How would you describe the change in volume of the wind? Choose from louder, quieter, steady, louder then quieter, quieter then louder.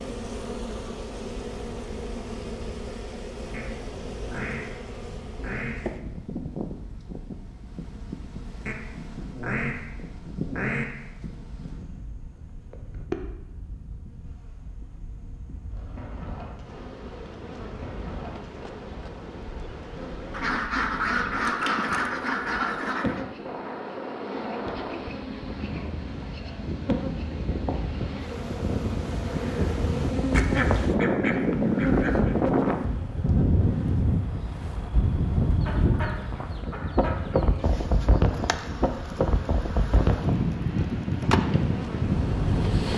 louder.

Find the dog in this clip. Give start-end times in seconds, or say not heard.
not heard.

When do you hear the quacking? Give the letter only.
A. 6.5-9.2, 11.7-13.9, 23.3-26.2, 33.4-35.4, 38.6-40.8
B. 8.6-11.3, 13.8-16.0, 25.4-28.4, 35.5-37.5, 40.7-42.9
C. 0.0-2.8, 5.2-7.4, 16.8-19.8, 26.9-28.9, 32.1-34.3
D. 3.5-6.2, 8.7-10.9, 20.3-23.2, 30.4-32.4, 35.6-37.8
D.